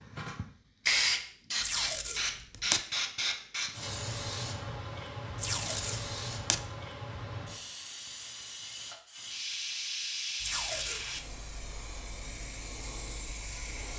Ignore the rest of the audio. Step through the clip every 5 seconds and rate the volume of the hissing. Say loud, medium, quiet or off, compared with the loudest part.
loud, medium, medium.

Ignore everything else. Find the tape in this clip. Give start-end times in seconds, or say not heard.
1.6-2.8, 5.3-6.6, 10.4-11.1.